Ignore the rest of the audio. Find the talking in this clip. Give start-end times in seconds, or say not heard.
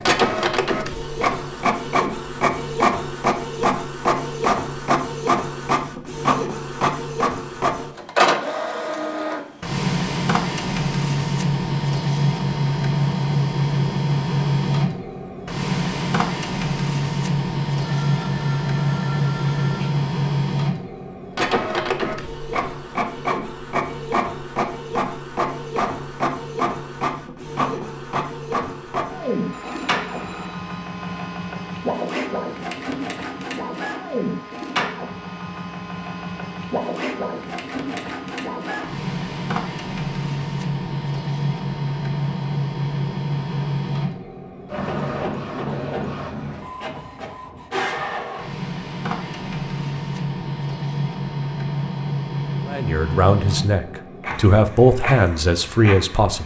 52.6-56.4.